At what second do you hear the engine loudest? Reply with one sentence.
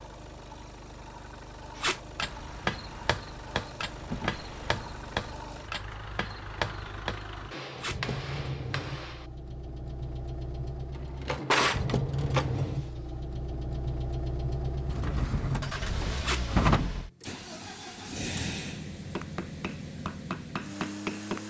The volume of the engine peaks at 12 seconds.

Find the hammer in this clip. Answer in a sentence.
You can hear the hammer from 1.8 to 9.3 s and from 19.1 to 21.4 s.